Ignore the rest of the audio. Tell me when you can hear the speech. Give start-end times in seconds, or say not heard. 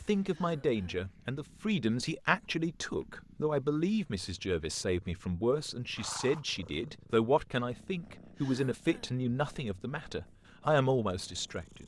0.1-11.8.